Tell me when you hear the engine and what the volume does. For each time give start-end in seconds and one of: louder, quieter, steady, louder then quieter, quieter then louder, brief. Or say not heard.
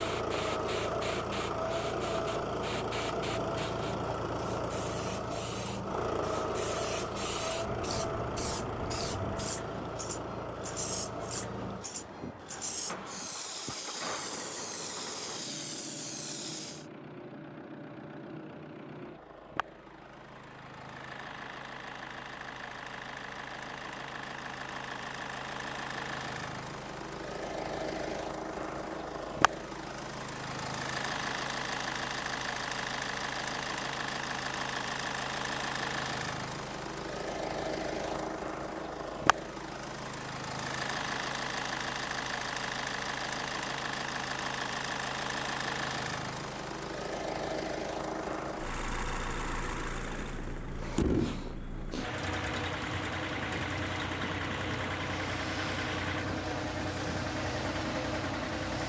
0.0-58.8 quieter then louder.